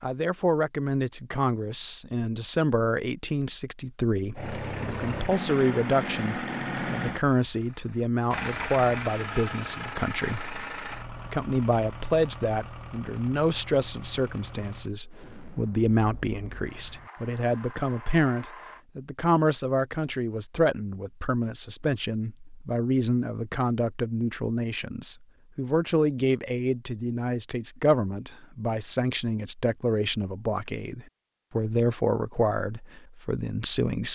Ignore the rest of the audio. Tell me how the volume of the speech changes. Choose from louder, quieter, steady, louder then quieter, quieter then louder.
steady.